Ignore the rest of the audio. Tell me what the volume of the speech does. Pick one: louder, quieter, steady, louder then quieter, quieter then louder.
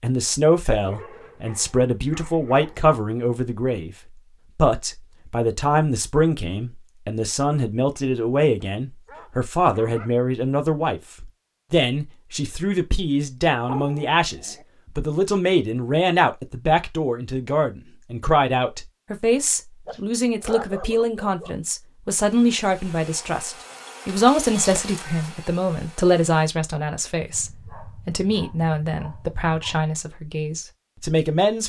steady.